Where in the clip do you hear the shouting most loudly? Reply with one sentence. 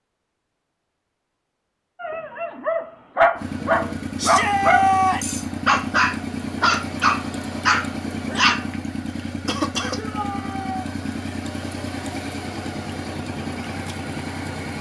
The loudest moment of the shouting is at 5 seconds.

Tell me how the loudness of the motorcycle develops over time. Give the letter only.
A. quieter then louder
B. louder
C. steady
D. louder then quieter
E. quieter
C.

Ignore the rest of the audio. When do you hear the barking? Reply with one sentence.
The barking can be heard from 2.0 to 8.7 s.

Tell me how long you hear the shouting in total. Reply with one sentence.
The shouting can be heard for 2 seconds in total.